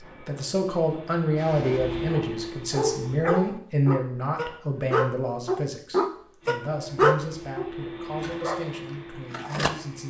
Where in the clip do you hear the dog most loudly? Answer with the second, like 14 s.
7 s.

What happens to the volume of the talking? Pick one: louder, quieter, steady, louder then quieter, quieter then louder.
quieter.